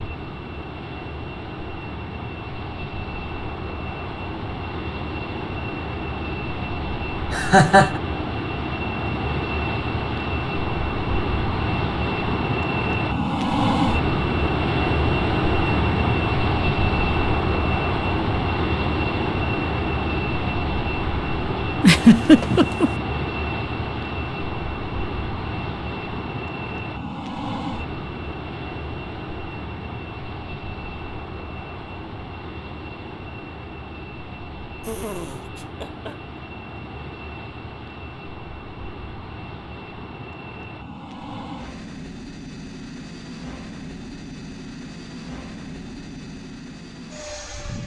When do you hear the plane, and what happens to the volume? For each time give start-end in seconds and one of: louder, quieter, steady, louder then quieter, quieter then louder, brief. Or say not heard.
0.0-47.8 louder then quieter.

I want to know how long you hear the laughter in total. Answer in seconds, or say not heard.
3 s.